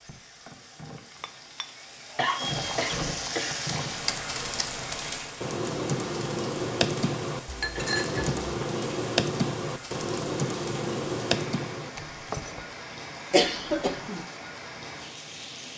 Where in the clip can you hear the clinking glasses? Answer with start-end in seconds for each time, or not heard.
1.2-2.2, 7.5-8.4, 12.3-12.8.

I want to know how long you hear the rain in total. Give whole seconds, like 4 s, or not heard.
16 s.